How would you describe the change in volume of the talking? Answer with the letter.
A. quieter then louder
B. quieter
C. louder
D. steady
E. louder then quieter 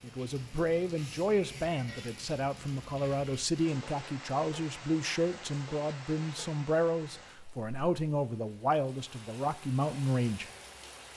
D.